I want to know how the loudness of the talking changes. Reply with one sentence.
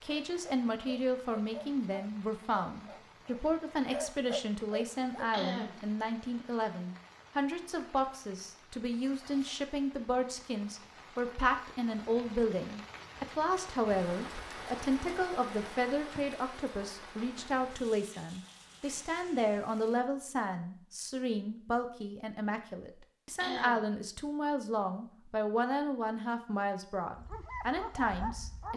The loudness of the talking stays about the same.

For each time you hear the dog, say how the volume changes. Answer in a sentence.
You can hear the dog from 0.1 to 5.4 s, getting quieter then louder; and briefly from 27.1 to 28.7 s.